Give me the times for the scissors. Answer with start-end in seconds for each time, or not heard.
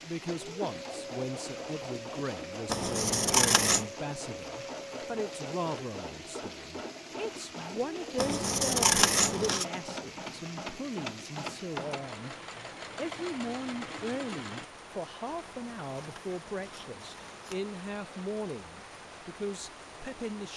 2.6-3.9, 8.2-9.7, 15.3-17.8.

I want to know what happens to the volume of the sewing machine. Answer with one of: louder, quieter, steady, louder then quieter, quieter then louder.
steady.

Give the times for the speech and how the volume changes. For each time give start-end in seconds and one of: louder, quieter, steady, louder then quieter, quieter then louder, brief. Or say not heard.
0.0-20.5 steady.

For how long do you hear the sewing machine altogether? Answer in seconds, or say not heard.
15 s.